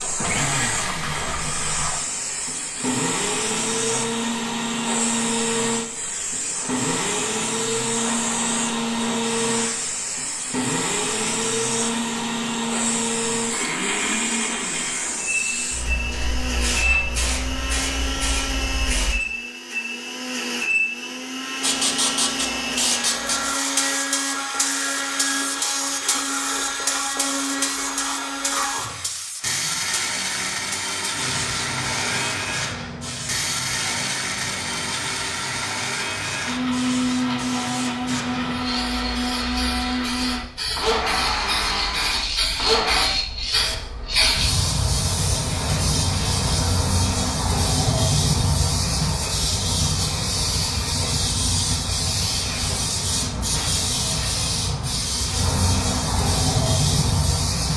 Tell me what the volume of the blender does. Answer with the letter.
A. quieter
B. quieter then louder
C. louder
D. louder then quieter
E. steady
E.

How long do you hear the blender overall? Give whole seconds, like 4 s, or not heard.
43 s.